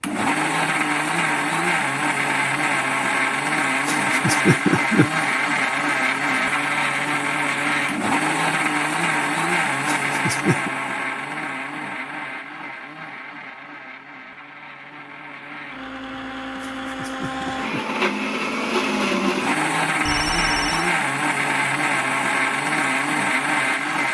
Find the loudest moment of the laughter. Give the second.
5 s.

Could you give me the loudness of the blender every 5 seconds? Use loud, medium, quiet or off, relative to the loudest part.
loud, loud, medium, loud, loud.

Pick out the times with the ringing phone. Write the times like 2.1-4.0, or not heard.
20.1-20.9.